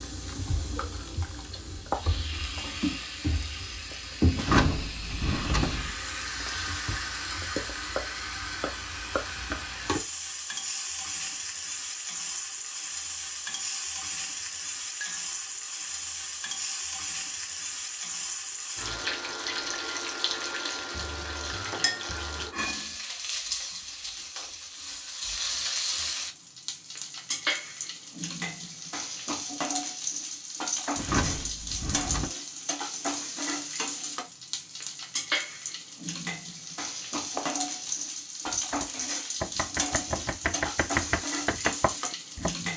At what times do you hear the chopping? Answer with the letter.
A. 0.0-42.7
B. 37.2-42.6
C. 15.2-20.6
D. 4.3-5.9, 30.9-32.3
B.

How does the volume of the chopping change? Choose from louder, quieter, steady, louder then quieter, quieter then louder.
louder.